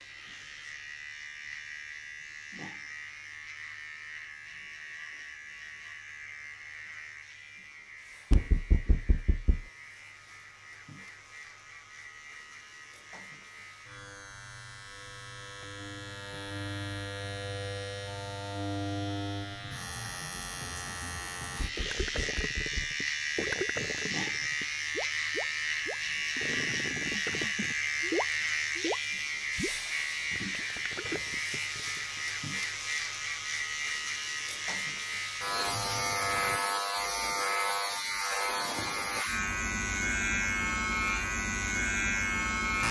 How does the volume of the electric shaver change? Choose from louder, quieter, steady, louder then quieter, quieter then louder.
louder.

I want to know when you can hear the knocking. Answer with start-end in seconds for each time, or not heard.
8.3-9.7, 21.6-22.9.